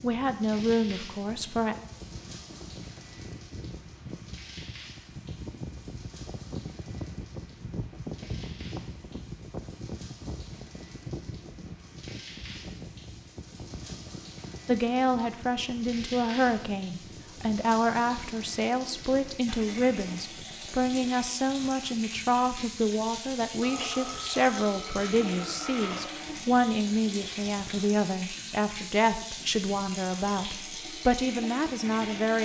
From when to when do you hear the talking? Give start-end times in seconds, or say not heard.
0.0-1.8, 14.7-32.4.